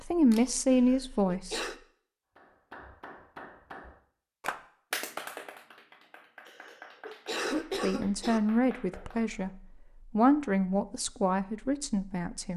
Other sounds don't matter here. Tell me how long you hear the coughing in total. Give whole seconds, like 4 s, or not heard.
3 s.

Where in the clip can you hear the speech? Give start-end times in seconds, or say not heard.
0.0-1.6, 7.5-9.5, 10.1-12.5.